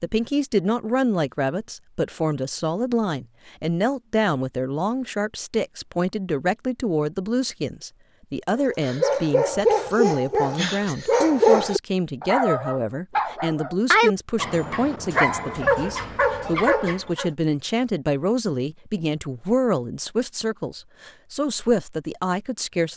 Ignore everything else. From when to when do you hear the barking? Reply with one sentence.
The barking can be heard from 8.6 to 17.3 s.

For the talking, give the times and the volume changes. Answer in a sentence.
The talking can be heard from 0.0 to 22.9 s, at a steady volume.